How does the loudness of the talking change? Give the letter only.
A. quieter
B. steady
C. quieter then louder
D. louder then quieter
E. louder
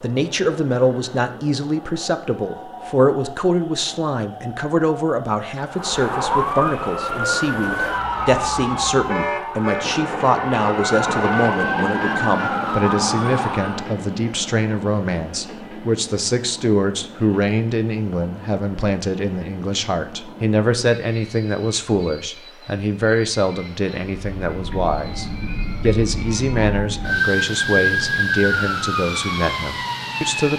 B.